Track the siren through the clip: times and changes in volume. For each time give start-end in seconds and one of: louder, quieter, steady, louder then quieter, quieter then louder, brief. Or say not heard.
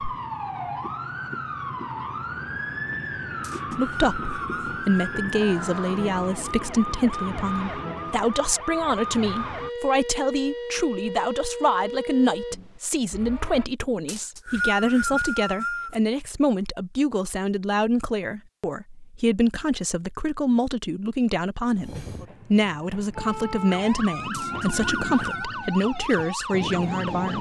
0.0-13.7 steady
23.1-27.3 steady.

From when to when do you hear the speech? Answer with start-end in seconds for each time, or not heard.
3.8-27.3.